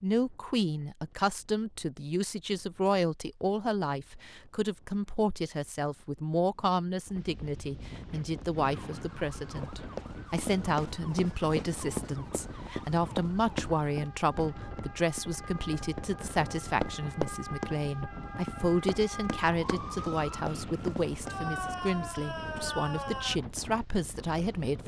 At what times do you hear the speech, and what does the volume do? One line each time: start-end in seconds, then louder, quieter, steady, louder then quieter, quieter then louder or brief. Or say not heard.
0.0-24.8 steady.